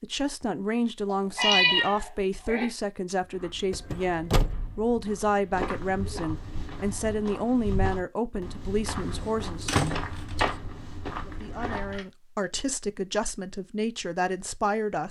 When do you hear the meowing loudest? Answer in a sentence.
The loudest moment of the meowing is at 2 seconds.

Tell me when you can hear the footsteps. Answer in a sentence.
You can hear the footsteps from 3.2 to 12.1 s.